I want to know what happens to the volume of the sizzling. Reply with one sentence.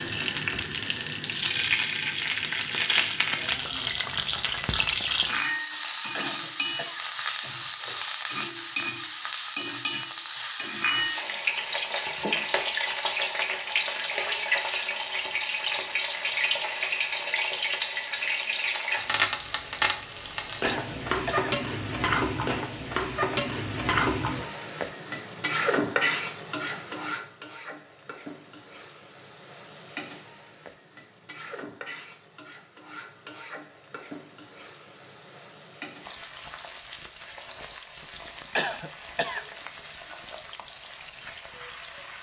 The volume of the sizzling goes down.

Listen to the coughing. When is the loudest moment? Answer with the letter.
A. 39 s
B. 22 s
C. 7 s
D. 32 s
A.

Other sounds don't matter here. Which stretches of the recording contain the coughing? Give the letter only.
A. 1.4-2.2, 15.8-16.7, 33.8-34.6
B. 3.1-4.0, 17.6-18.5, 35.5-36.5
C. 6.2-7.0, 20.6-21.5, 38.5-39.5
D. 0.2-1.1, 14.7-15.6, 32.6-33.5
C.